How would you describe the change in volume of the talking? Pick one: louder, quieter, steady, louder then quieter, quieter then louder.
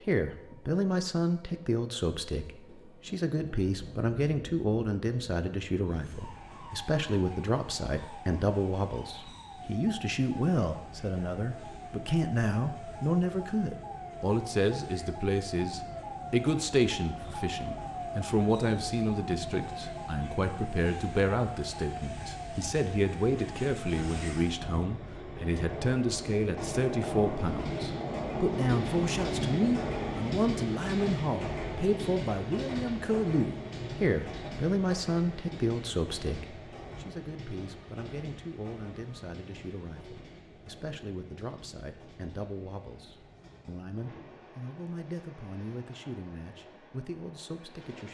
quieter.